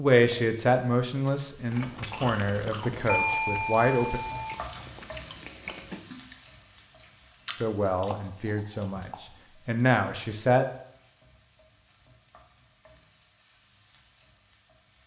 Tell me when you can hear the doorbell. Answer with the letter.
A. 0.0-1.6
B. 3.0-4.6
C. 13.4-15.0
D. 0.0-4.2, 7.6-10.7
B.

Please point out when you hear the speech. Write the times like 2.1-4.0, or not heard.
0.0-4.2, 7.6-10.7.